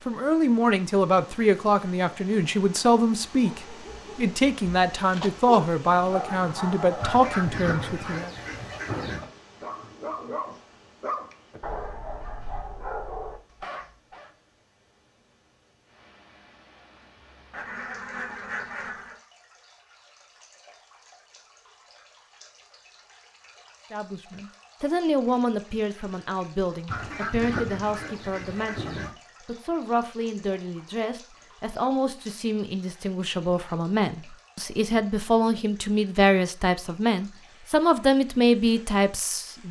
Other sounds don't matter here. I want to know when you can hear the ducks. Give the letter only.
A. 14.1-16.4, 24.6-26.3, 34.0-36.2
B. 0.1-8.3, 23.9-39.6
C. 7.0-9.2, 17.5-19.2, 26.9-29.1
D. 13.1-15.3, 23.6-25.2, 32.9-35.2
C.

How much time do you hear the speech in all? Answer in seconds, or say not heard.
24 s.